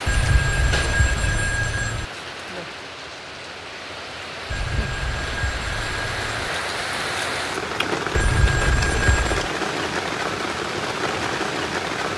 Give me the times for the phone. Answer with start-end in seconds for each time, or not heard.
0.1-2.0, 4.5-6.5, 8.1-9.5.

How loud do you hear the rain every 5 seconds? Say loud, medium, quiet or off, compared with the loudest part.
medium, loud, loud.